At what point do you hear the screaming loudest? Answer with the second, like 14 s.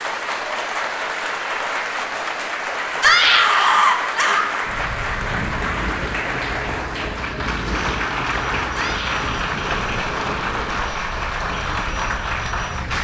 3 s.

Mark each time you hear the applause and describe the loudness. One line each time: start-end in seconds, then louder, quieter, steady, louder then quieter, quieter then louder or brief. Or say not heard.
0.0-12.9 steady.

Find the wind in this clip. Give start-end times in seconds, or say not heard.
4.6-12.9.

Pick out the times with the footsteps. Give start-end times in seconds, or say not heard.
not heard.